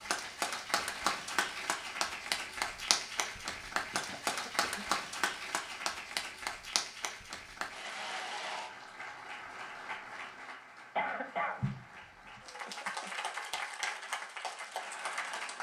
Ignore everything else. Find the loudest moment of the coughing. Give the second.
11 s.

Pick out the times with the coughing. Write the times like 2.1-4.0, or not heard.
3.9-4.8, 10.9-11.7.